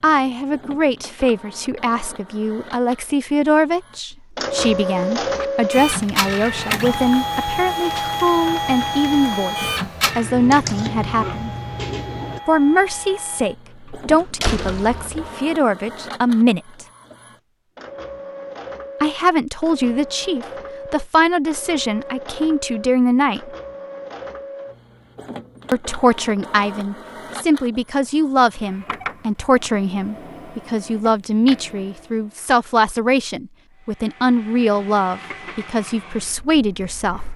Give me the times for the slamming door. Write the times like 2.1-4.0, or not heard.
13.8-15.3.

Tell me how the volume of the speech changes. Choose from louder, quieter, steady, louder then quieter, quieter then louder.
steady.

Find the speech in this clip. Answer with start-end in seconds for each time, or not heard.
0.0-11.5, 12.4-16.9, 19.0-23.5, 25.7-37.2.